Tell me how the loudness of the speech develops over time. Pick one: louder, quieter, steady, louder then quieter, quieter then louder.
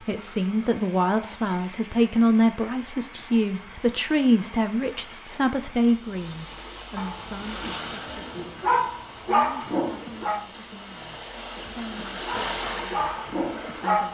quieter.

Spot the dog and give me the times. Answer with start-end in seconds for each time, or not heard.
7.0-10.4, 11.9-14.0.